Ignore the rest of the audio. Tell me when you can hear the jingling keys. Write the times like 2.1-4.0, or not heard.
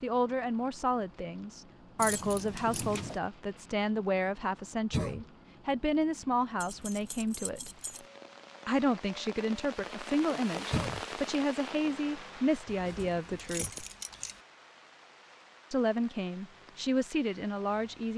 1.9-3.2, 6.6-8.1, 12.7-14.4.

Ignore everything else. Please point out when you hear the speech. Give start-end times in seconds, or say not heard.
0.0-7.7, 8.7-13.8, 15.7-18.1.